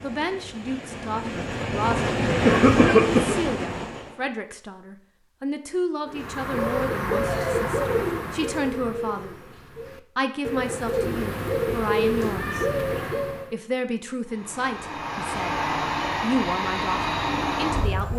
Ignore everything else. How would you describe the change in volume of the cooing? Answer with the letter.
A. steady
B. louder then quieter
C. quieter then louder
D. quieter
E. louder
C.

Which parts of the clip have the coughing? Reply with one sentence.
You can hear the coughing from 1.8 to 3.4 s.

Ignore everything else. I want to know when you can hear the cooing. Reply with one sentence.
The cooing can be heard from 6.0 to 13.6 s.